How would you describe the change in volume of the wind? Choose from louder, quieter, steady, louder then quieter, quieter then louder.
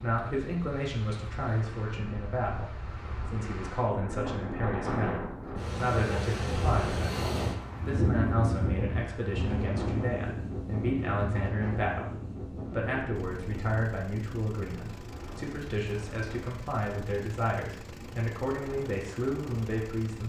louder then quieter.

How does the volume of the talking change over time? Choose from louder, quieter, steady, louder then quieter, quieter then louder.
steady.